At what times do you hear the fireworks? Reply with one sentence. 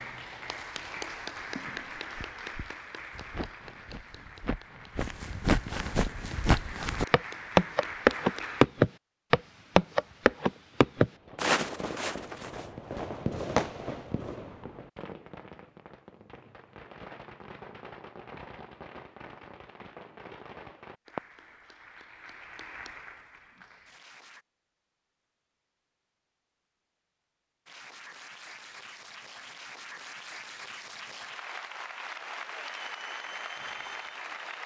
The fireworks can be heard from 11.1 to 21.6 s.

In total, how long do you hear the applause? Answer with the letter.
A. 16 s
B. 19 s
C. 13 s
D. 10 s
B.